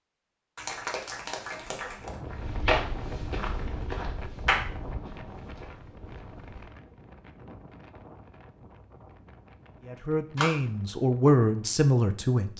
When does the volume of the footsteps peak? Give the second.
3 s.